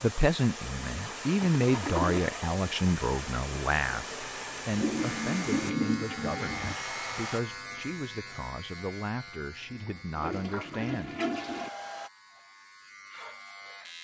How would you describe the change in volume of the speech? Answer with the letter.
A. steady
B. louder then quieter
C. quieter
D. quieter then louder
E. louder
C.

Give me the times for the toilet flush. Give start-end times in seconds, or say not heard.
0.8-2.4, 4.8-6.8, 9.7-11.7.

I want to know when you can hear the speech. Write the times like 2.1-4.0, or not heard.
0.0-11.1.